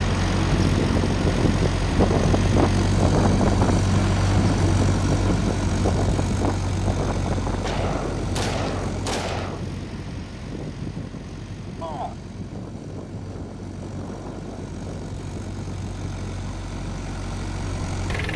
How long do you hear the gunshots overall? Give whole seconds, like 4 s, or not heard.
2 s.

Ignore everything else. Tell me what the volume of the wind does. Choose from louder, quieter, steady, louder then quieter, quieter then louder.
quieter.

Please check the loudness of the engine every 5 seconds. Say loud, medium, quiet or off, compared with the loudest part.
loud, medium, quiet, medium.